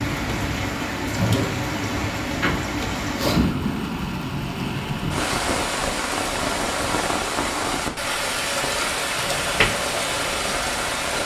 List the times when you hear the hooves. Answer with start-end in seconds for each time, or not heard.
not heard.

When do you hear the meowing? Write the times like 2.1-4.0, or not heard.
not heard.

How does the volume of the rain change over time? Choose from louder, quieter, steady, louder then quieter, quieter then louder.
steady.